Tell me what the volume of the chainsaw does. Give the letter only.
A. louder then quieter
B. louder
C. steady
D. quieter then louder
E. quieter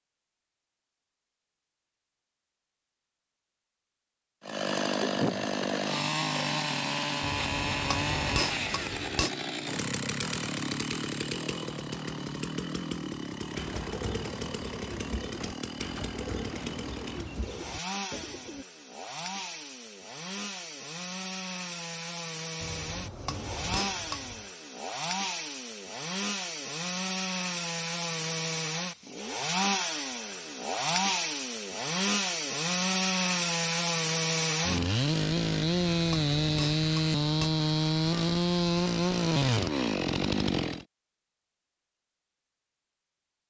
D.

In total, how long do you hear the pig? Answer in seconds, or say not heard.
not heard.